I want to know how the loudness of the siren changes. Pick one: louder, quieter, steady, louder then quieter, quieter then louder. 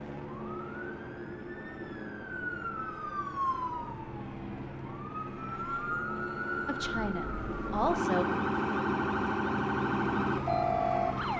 louder.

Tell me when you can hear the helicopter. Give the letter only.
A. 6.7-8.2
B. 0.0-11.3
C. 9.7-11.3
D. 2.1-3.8
B.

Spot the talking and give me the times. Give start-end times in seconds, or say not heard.
6.7-8.2.